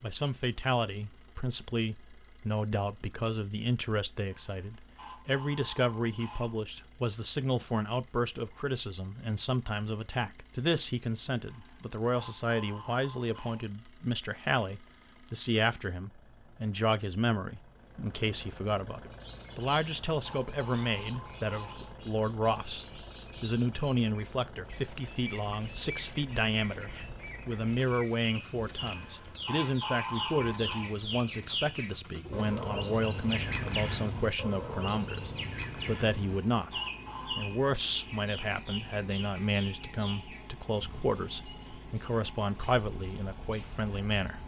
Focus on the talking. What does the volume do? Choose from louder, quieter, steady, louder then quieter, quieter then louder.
steady.